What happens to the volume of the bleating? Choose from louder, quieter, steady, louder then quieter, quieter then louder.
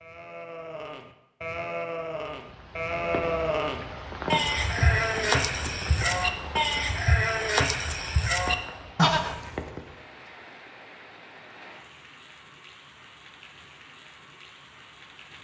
louder.